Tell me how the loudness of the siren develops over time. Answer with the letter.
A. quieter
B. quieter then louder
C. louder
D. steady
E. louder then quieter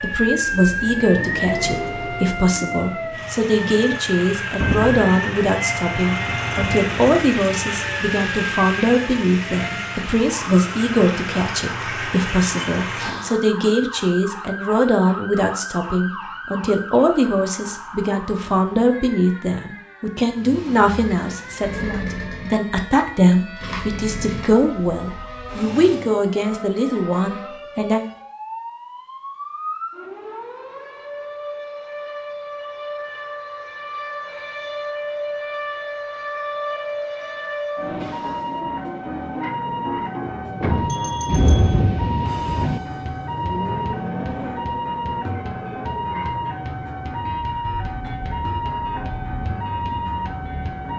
B.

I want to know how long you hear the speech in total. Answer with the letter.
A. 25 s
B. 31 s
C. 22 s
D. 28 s
D.